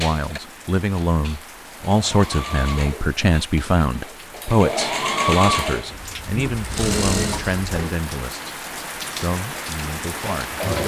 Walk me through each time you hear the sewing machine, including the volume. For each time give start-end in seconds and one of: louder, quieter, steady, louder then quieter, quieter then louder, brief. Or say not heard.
0.0-10.8 louder then quieter.